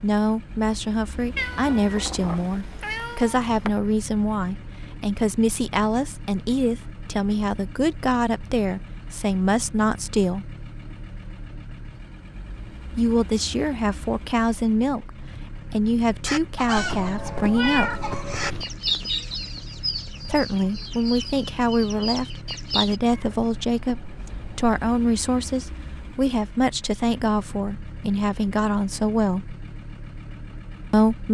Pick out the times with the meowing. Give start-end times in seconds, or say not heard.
1.4-3.7, 16.8-18.6, 23.1-24.8.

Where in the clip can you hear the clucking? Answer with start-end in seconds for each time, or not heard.
16.2-23.0.